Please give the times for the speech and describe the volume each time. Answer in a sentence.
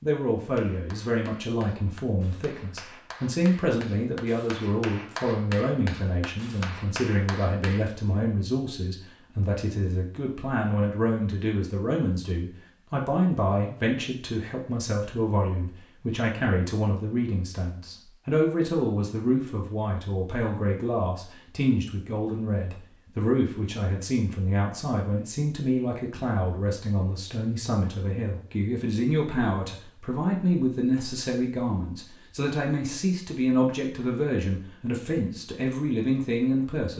You can hear the speech from 0.0 to 36.9 s, at a steady volume.